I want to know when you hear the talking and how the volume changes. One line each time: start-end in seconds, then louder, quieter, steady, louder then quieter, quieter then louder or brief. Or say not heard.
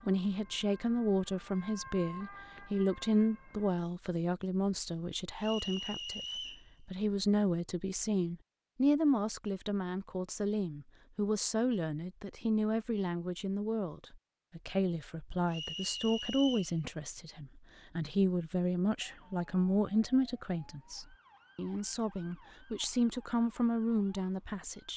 0.1-24.9 steady.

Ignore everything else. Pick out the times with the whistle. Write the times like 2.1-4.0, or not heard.
5.4-6.7, 15.5-16.8.